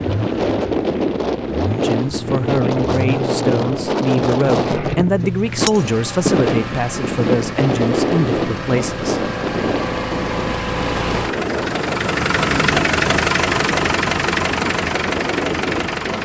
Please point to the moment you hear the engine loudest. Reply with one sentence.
The volume of the engine peaks at 13 seconds.